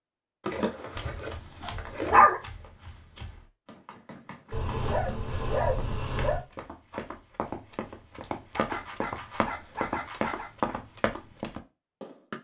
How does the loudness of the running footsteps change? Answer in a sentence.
The loudness of the running footsteps goes up.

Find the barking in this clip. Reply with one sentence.
You can hear the barking from 0.5 to 2.4 s, from 4.5 to 6.5 s and from 8.6 to 10.5 s.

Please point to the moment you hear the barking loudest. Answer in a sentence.
The volume of the barking peaks at 2 seconds.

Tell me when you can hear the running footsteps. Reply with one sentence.
The running footsteps can be heard from 0.9 to 12.4 s.